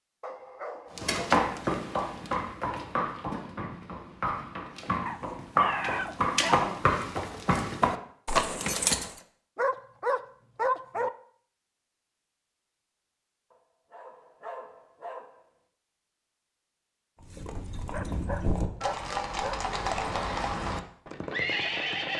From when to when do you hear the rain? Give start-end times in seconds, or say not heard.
not heard.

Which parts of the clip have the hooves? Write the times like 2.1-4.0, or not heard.
0.9-9.2, 17.2-22.1.